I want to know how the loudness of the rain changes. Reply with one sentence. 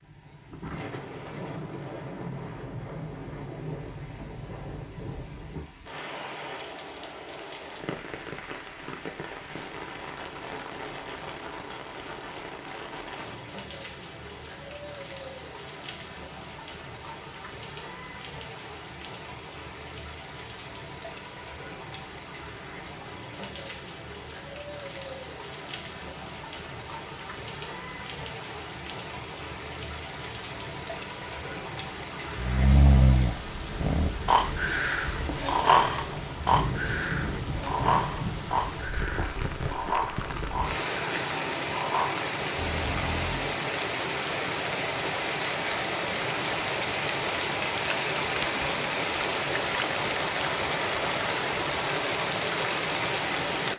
The volume of the rain goes up.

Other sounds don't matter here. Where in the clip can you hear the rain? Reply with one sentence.
You can hear the rain from 0.0 to 53.7 s.